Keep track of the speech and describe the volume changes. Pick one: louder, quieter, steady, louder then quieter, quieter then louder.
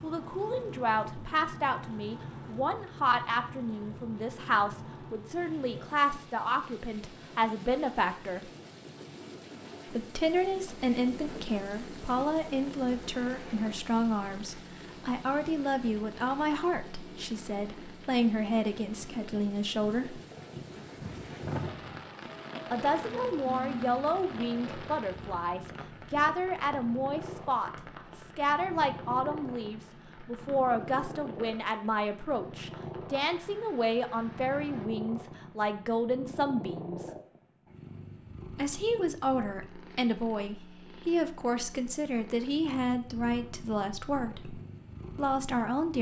steady.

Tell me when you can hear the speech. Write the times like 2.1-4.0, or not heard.
0.0-8.5, 9.9-20.2, 22.7-37.1, 38.5-45.9.